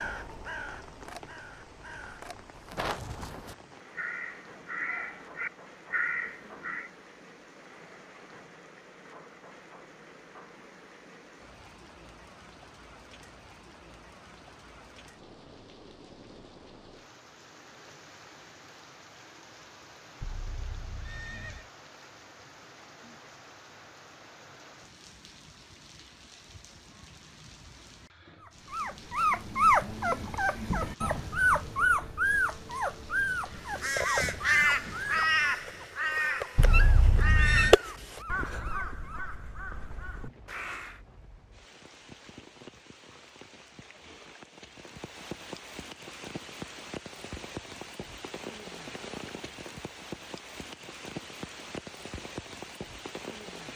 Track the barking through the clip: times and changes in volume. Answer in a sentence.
The barking can be heard from 28.7 to 39.3 s, getting quieter.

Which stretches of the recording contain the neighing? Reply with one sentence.
The neighing can be heard from 20.2 to 21.6 s and from 36.5 to 37.8 s.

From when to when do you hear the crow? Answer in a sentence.
The crow can be heard from 0.0 to 6.9 s and from 33.5 to 41.0 s.